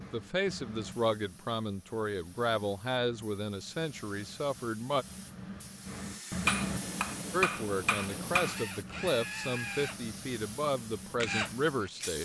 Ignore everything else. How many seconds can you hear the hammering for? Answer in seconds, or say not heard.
2 s.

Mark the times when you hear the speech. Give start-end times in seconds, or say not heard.
0.0-5.0, 7.3-12.2.